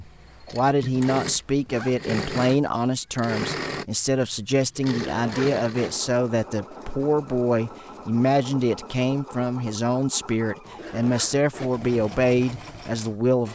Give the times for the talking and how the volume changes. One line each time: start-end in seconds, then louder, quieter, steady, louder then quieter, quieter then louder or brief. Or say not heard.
0.0-13.5 steady.